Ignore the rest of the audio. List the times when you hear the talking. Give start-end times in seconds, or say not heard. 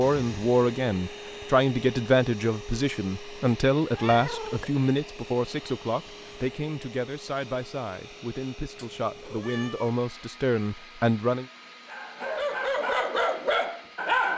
0.0-11.4.